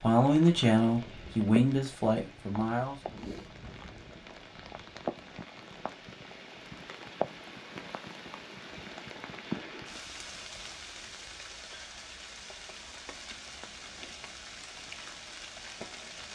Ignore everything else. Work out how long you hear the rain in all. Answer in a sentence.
The rain can be heard for 16 seconds in total.